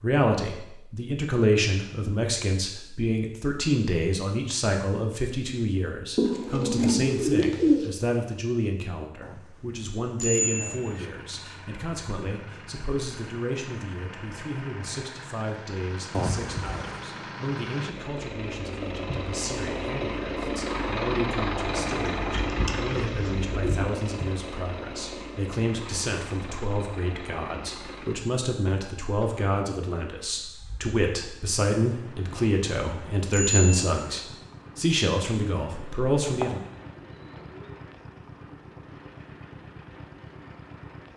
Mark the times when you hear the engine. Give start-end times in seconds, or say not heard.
10.3-41.1.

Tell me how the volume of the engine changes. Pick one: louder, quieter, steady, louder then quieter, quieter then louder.
louder then quieter.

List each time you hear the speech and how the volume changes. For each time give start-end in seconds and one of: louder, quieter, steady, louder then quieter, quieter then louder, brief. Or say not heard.
0.0-36.6 quieter then louder.